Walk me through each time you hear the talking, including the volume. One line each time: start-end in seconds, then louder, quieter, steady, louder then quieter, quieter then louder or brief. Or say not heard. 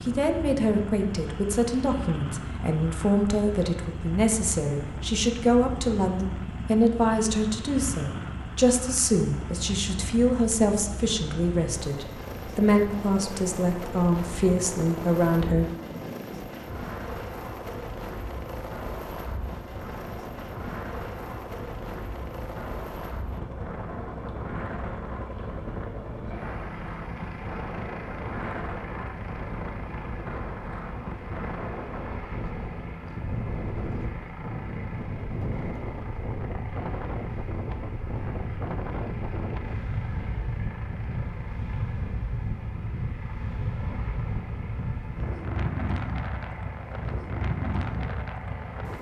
0.0-15.7 steady.